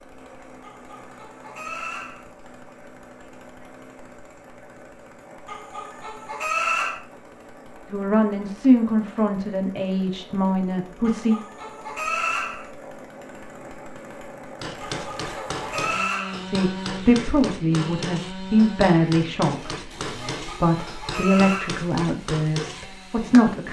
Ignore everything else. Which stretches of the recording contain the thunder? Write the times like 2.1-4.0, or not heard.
not heard.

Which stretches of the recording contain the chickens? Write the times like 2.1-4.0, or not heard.
0.6-2.3, 5.5-7.0, 11.1-12.7, 14.8-16.4, 20.3-21.9.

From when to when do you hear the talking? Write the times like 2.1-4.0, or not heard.
7.9-11.3, 16.4-23.6.